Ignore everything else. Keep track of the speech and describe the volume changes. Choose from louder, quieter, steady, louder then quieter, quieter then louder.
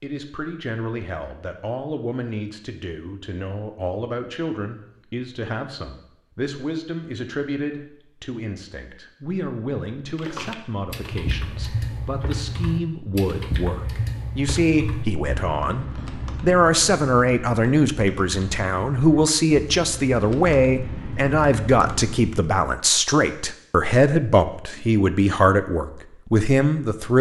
louder.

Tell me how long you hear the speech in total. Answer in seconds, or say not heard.
27 s.